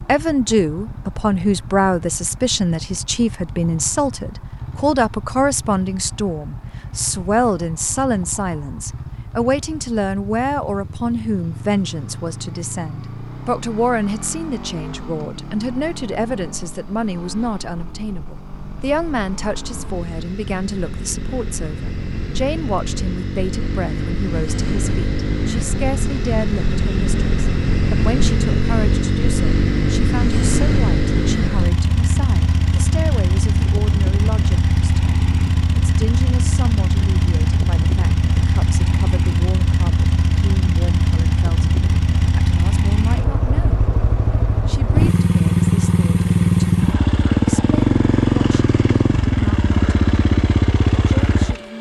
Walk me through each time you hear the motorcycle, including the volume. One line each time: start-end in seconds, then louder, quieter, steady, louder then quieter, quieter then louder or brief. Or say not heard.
0.0-51.7 louder.